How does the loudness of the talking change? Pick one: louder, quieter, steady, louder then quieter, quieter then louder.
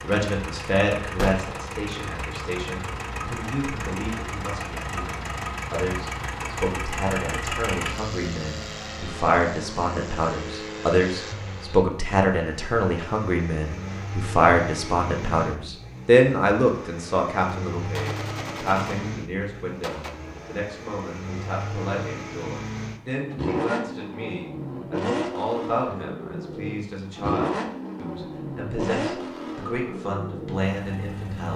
louder then quieter.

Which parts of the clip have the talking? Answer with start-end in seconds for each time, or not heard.
0.0-31.5.